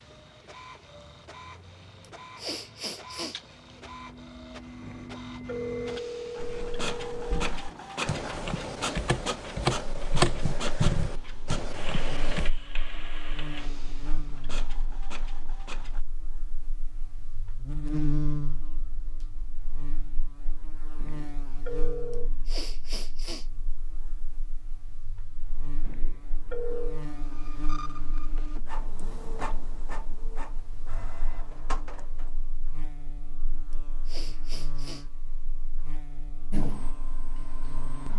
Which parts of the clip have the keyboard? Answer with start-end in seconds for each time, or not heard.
6.4-12.5.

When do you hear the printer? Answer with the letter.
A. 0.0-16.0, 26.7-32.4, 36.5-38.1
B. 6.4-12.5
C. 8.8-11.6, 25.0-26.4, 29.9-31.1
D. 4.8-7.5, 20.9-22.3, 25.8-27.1
A.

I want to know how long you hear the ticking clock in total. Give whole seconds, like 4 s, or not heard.
not heard.